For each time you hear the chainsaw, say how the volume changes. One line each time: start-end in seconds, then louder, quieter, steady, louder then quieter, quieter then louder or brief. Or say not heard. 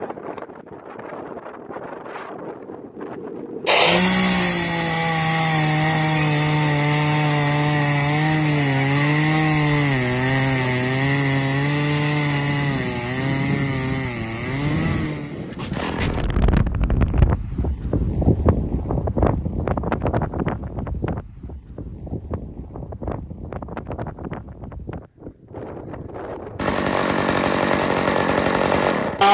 3.6-16.2 quieter
26.6-29.2 brief.